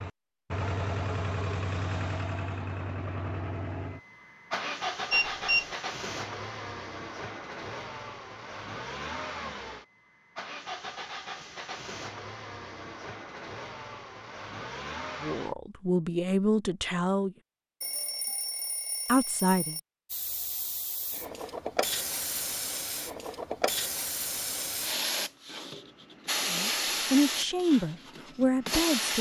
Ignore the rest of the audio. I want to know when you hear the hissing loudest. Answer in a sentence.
The volume of the hissing peaks at 27 seconds.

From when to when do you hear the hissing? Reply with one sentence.
The hissing can be heard from 20.1 to 29.1 s.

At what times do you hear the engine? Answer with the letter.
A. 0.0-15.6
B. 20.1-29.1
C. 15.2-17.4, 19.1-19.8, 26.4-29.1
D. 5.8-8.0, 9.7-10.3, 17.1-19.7
A.